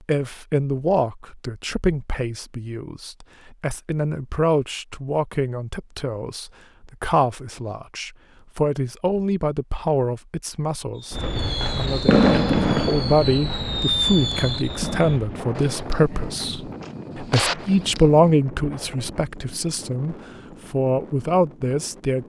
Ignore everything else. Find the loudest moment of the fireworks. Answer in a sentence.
The volume of the fireworks peaks at 12 seconds.